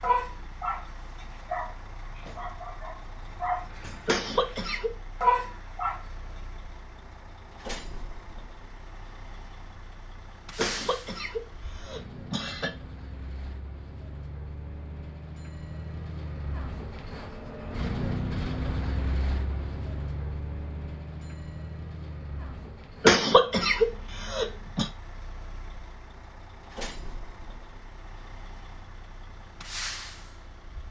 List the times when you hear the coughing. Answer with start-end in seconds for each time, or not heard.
4.0-5.0, 10.6-12.8, 23.0-24.9.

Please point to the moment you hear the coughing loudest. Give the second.
23 s.